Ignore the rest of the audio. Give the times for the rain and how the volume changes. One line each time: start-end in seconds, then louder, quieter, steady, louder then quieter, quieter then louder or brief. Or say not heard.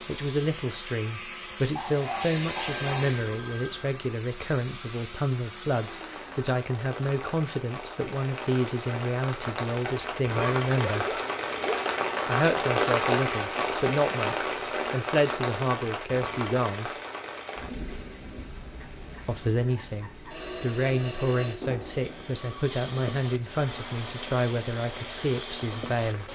5.8-26.3 louder then quieter.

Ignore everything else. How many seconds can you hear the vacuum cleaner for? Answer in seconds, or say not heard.
11 s.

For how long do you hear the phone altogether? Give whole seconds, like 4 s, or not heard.
3 s.